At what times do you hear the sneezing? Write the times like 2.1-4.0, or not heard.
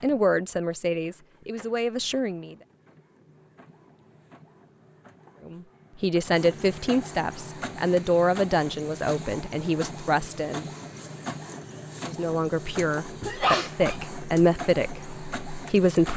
13.2-14.4.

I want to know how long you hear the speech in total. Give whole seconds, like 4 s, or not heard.
12 s.